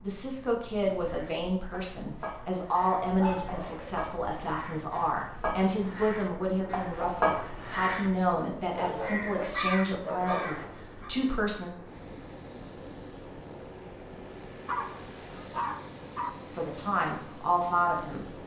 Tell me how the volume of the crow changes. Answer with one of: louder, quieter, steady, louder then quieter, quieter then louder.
louder.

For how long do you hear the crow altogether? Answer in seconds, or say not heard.
10 s.